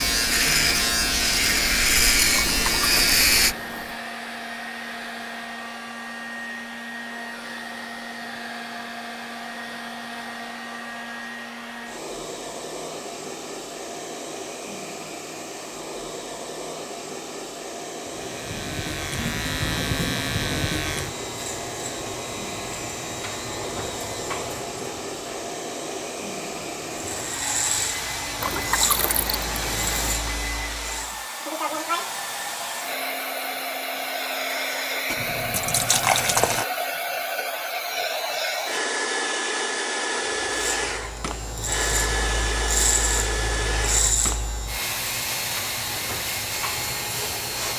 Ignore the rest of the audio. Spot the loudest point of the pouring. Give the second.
36 s.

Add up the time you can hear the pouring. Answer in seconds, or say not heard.
5 s.